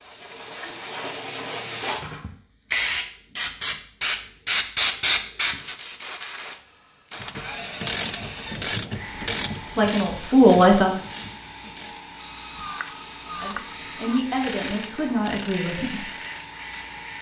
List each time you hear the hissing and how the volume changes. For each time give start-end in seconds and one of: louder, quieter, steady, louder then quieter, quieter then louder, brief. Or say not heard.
0.0-17.1 quieter.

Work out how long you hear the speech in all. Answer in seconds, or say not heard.
4 s.